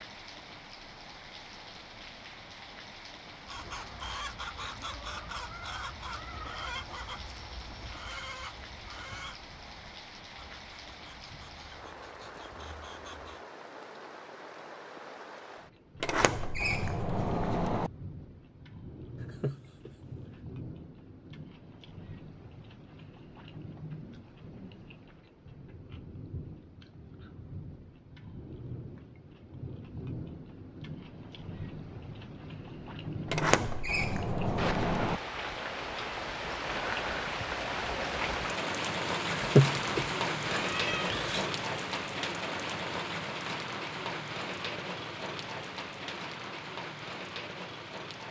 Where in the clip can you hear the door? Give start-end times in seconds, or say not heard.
16.0-17.9, 33.2-35.2.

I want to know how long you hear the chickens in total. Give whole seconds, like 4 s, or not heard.
10 s.